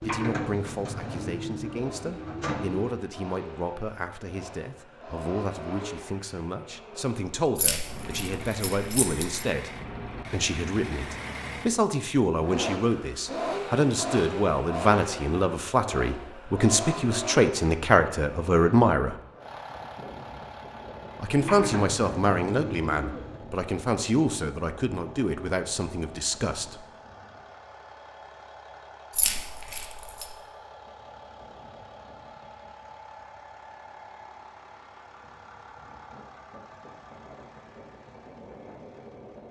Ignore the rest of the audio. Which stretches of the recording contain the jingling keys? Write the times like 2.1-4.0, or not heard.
7.5-9.4, 29.1-30.2.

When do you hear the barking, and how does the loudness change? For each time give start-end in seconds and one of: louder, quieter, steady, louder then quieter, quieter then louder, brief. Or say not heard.
not heard.